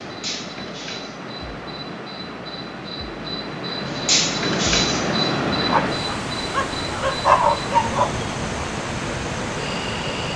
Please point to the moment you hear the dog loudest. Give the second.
7 s.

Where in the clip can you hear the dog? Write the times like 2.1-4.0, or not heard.
5.6-8.2.